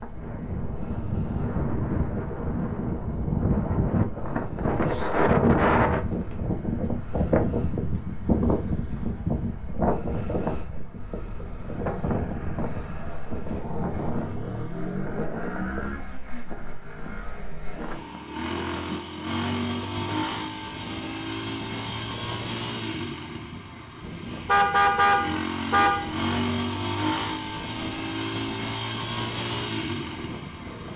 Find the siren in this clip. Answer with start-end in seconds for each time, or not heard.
not heard.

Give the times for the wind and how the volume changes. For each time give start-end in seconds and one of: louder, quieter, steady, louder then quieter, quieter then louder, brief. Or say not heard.
0.0-30.9 quieter.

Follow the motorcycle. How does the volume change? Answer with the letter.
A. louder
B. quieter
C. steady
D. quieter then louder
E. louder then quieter
A.